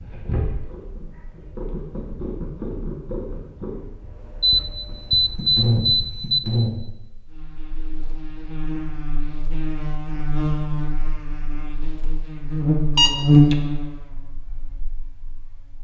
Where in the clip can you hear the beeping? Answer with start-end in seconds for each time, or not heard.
4.4-6.4, 12.9-13.6.